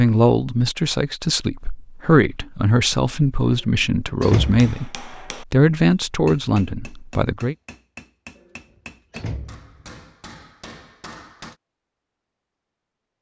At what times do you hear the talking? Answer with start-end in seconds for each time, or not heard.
0.0-7.5.